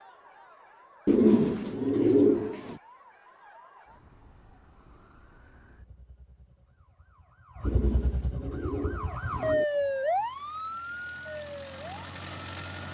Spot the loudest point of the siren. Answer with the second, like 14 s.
10 s.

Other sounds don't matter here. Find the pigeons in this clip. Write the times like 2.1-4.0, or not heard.
1.1-2.8, 7.7-9.7.